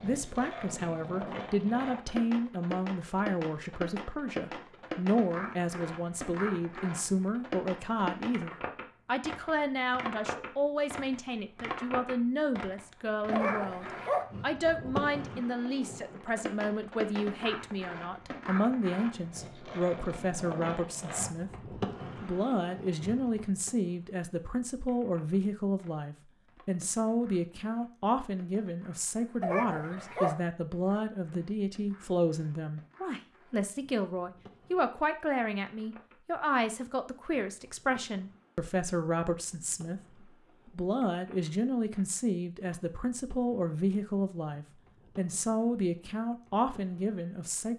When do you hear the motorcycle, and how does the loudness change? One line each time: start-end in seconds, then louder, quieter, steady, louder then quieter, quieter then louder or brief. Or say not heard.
not heard.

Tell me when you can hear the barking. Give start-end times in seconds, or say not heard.
13.3-14.2, 29.4-30.4.